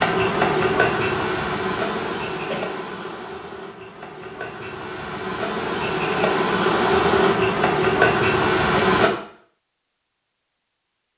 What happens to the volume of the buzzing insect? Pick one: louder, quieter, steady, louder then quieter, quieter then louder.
quieter then louder.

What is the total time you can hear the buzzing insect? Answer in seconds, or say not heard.
9 s.